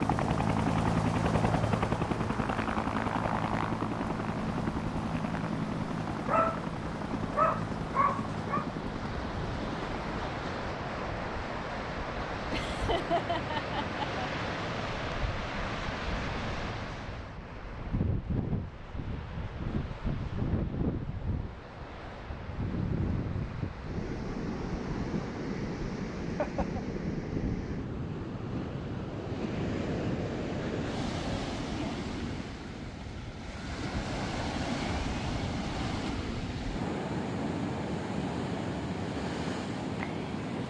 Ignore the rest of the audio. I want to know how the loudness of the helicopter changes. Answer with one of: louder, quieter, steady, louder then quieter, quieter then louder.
quieter.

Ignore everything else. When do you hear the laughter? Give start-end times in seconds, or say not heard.
12.5-14.2, 26.2-26.9.